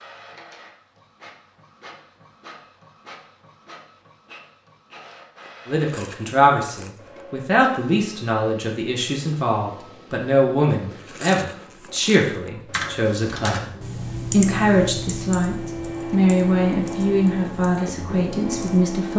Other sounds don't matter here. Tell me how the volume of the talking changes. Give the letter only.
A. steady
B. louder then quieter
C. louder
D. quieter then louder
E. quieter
A.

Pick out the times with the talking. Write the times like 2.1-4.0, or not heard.
5.7-13.7, 14.3-19.1.